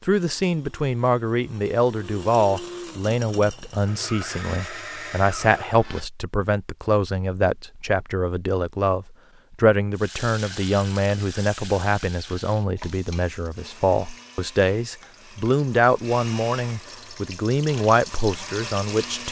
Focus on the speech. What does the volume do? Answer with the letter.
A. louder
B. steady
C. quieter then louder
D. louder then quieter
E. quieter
B.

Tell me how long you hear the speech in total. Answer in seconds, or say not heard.
19 s.